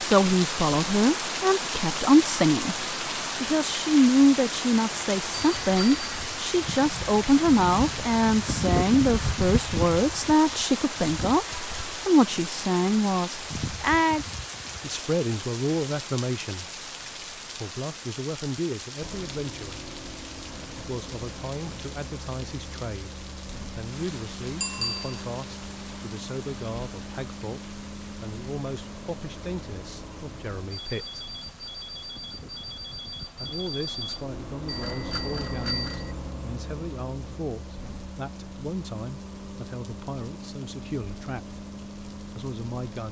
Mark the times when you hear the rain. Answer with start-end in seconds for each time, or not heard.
0.0-43.0.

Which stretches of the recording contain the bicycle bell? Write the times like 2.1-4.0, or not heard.
5.3-6.2, 24.6-25.2, 34.6-36.1.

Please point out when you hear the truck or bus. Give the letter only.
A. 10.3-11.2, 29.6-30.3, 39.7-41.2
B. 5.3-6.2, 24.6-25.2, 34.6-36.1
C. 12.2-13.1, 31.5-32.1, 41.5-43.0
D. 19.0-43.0
D.